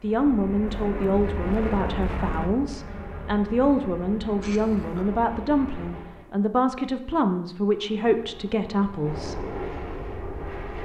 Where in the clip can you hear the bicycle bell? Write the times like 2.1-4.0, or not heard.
not heard.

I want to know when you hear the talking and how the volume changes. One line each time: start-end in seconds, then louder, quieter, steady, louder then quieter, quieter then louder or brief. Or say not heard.
0.0-9.4 steady.